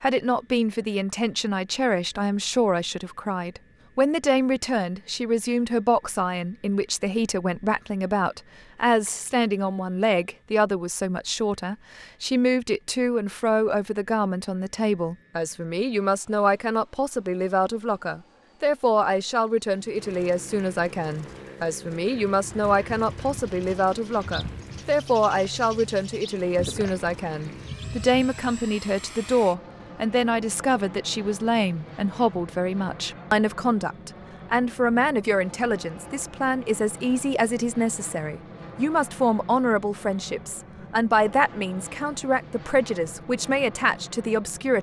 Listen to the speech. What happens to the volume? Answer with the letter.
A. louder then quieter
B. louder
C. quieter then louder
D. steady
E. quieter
D.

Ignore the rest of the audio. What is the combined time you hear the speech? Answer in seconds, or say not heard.
45 s.